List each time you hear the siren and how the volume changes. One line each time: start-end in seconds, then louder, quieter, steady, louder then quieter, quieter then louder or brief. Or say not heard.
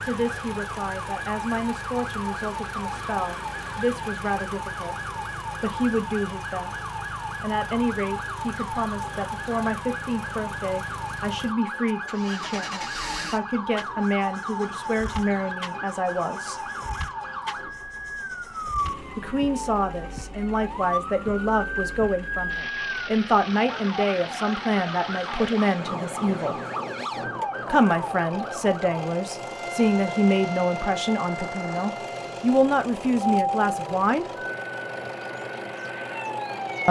0.0-36.8 steady.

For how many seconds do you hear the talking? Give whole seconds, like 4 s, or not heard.
31 s.